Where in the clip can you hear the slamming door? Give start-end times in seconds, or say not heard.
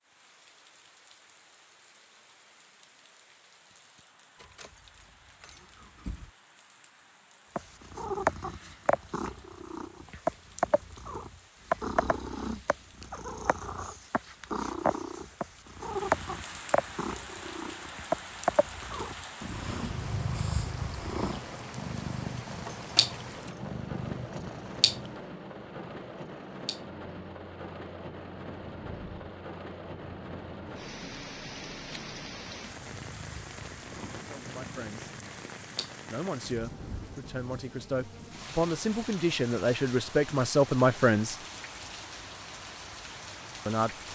not heard.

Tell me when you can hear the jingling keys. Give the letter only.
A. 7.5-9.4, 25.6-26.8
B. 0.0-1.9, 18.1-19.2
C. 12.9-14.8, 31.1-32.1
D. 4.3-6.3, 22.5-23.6
D.